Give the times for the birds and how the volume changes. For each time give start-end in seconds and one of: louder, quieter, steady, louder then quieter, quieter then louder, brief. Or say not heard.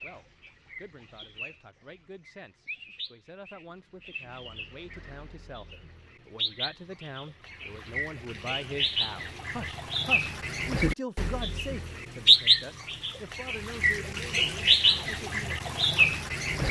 0.0-16.6 louder.